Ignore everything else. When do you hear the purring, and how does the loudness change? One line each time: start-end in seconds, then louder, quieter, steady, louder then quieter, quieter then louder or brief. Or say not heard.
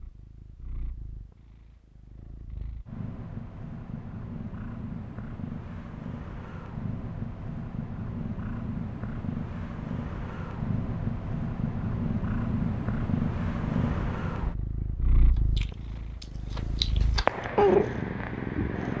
0.0-18.9 louder.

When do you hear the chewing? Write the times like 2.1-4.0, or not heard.
15.3-17.4.